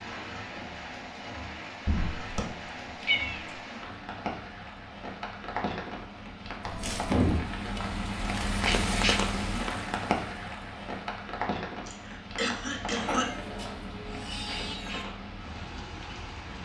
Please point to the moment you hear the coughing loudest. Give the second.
13 s.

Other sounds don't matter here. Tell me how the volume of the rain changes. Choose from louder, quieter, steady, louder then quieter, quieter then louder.
louder then quieter.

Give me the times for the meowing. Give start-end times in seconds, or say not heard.
1.9-3.5, 6.6-7.5, 13.0-15.1.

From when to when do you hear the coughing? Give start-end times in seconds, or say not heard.
11.8-13.3.